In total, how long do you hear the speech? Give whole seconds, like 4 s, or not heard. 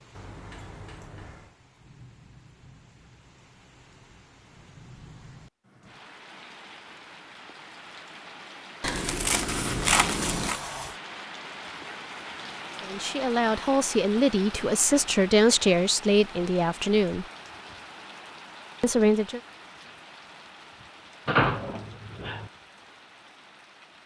5 s.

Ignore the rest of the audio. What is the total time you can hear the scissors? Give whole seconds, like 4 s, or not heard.
2 s.